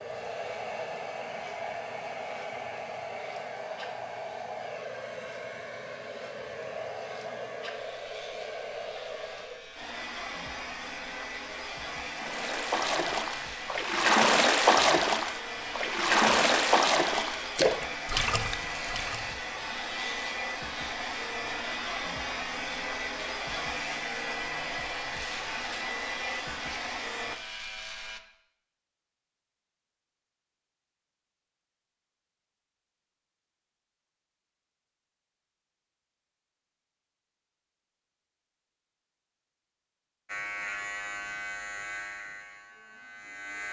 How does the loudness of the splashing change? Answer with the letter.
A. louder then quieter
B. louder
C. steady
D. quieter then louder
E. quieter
A.